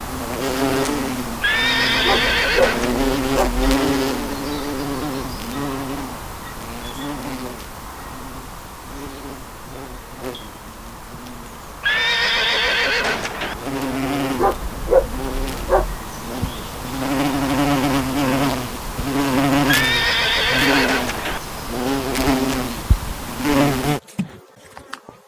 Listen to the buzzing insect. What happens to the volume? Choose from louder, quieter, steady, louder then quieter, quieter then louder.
quieter then louder.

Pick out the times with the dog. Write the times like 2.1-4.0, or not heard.
2.0-3.7, 14.3-16.0.